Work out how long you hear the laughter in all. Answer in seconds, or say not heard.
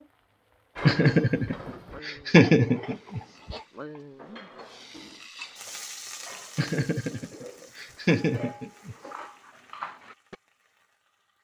5 s.